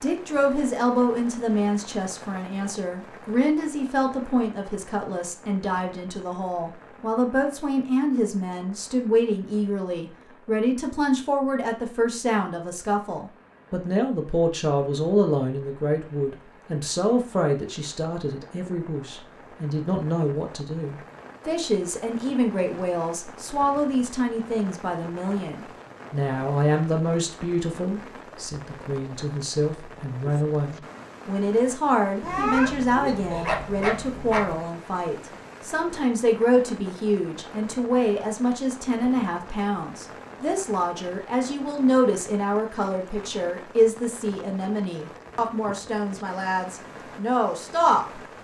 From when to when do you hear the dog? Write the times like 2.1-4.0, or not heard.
32.2-34.6.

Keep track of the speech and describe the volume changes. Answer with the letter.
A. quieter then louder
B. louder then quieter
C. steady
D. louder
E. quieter
C.